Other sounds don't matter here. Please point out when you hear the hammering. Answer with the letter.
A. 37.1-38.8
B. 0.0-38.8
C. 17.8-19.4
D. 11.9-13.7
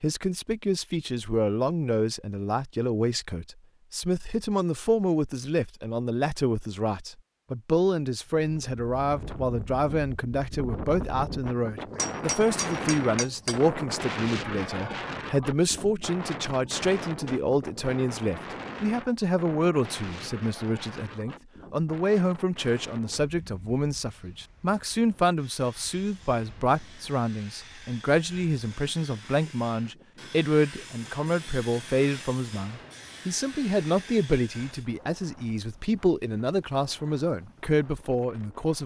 D.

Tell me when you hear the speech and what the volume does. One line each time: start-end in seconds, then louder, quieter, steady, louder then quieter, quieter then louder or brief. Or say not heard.
0.0-38.8 steady.